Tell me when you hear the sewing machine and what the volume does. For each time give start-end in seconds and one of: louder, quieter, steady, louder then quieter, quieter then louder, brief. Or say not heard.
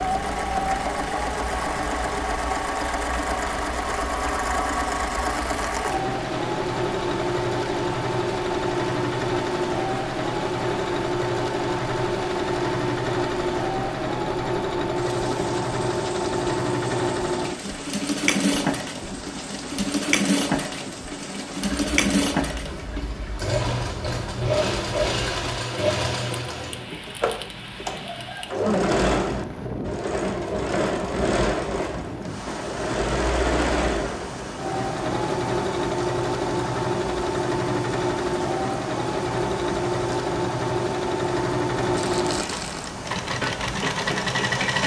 0.0-44.8 steady.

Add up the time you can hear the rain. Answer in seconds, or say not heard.
45 s.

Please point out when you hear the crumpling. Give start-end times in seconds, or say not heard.
42.0-42.9.